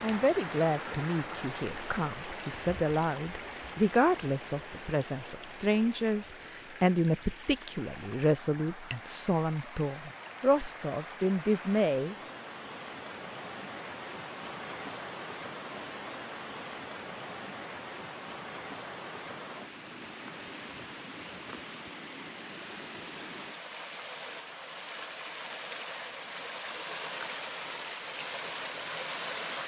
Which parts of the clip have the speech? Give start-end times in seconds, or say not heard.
0.0-12.2.